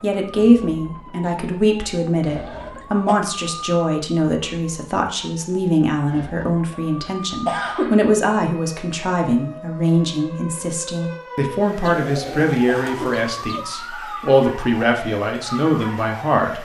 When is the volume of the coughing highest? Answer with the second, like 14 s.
8 s.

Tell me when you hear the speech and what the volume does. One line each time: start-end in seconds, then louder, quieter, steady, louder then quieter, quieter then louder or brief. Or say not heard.
0.0-16.5 steady.